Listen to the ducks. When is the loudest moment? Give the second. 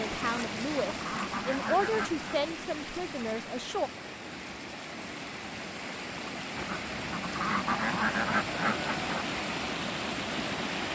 8 s.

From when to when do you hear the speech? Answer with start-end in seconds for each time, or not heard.
0.0-3.9.